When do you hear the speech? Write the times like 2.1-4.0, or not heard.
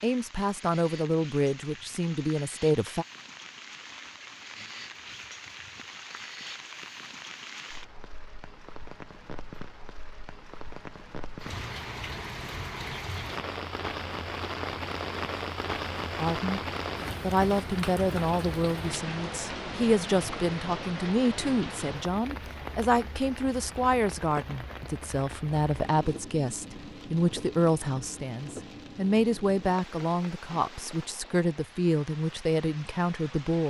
0.0-3.0, 16.2-16.6, 17.2-33.6.